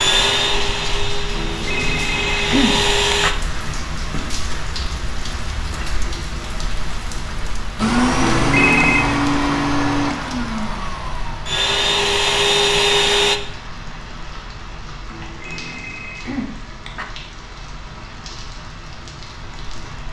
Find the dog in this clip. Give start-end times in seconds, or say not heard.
not heard.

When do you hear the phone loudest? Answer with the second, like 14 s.
9 s.